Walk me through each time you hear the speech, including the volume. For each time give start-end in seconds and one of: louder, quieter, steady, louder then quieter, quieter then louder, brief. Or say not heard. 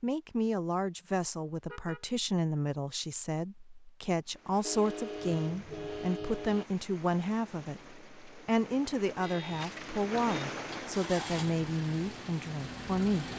0.0-13.3 steady.